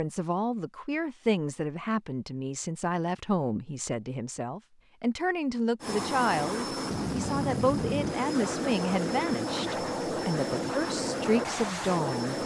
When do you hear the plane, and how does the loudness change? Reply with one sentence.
The plane can be heard from 5.8 to 12.4 s, at a steady volume.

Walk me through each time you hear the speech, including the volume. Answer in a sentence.
You can hear the speech from 0.0 to 12.4 s, at a steady volume.